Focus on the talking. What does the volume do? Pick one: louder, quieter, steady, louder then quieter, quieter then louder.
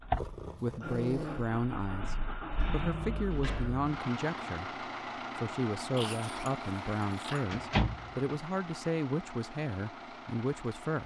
steady.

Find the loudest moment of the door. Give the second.
8 s.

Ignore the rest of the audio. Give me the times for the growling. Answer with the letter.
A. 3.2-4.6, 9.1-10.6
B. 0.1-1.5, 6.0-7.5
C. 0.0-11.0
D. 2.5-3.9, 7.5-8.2
B.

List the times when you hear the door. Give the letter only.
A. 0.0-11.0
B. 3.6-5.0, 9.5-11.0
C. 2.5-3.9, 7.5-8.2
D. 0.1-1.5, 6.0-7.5
C.